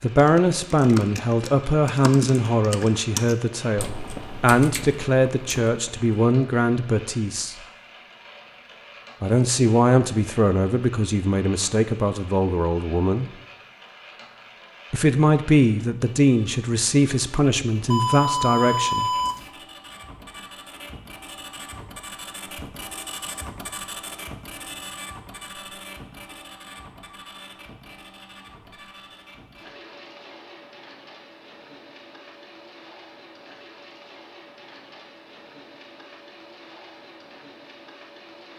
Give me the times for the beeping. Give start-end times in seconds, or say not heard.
17.9-19.5.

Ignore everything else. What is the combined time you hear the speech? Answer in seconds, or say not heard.
16 s.